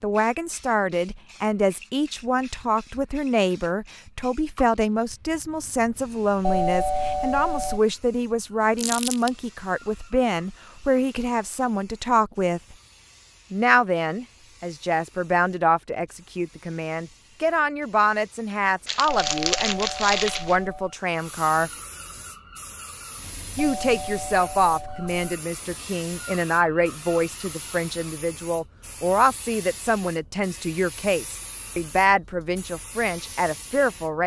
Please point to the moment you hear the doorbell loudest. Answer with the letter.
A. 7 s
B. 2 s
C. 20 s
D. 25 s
A.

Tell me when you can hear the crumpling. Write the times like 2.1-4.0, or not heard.
8.8-9.3, 18.9-20.6.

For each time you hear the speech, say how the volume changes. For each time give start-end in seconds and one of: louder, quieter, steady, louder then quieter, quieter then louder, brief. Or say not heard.
0.0-12.8 steady
13.5-21.7 steady
23.6-34.2 steady.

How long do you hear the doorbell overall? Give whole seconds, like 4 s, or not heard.
5 s.